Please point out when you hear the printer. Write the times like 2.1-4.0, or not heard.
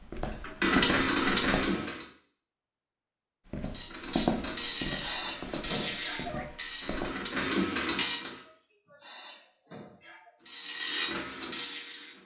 0.0-2.0, 3.6-8.4, 10.4-12.2.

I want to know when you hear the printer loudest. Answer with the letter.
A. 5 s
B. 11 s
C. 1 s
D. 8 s
C.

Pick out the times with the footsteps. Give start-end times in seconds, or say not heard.
0.1-1.6, 3.5-7.2.